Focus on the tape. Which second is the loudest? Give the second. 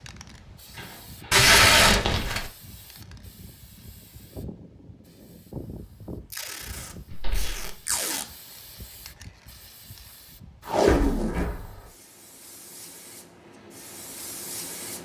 2 s.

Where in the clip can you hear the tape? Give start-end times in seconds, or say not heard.
1.3-2.5, 6.3-8.2, 10.7-11.4.